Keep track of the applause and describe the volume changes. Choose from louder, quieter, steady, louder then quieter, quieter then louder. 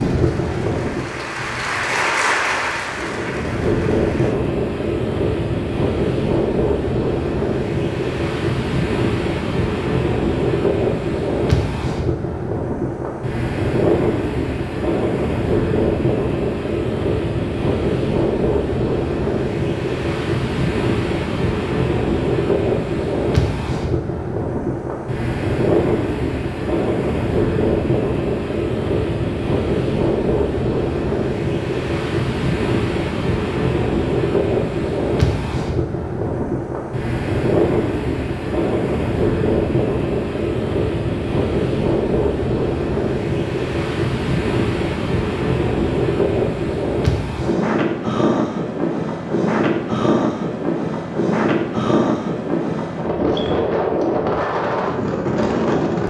louder then quieter.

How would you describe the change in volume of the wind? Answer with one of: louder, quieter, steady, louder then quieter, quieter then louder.
steady.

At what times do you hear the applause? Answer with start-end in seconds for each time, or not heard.
0.0-4.3.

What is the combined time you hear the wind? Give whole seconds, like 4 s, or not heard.
56 s.